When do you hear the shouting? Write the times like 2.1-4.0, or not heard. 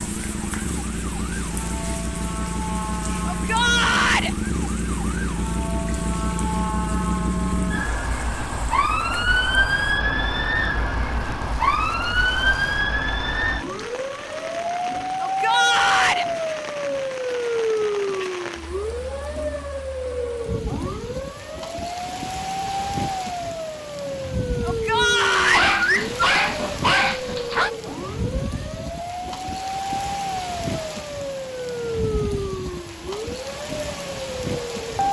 3.2-4.3, 15.2-16.2, 24.6-25.7.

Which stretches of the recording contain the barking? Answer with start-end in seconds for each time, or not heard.
25.4-27.7.